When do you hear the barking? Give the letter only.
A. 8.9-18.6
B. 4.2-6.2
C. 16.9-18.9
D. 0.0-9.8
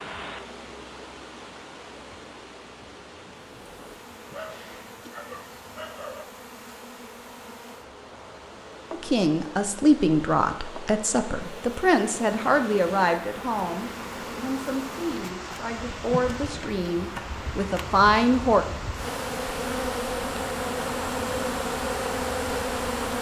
B.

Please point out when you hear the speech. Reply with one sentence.
You can hear the speech from 8.9 to 18.6 s.